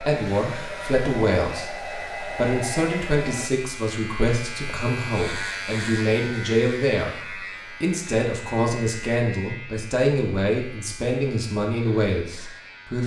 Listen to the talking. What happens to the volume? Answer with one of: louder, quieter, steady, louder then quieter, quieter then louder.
steady.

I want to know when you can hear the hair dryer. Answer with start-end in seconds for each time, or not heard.
0.0-3.5.